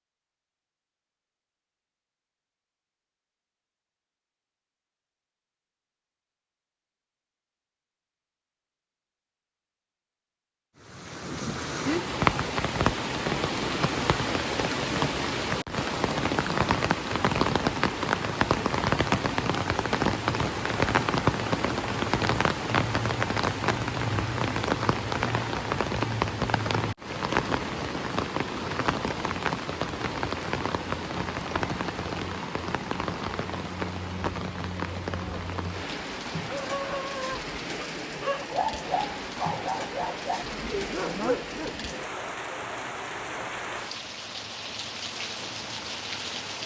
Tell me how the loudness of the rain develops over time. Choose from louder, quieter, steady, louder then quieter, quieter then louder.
quieter.